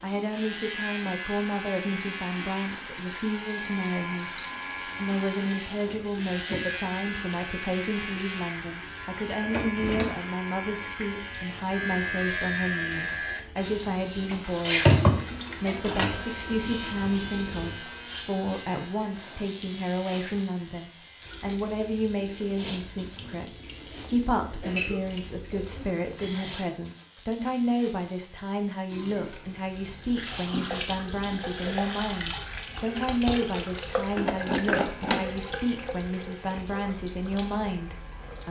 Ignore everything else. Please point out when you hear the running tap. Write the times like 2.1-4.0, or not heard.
0.0-17.8, 21.2-26.6, 28.9-38.4.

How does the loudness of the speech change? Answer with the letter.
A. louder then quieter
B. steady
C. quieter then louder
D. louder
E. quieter
B.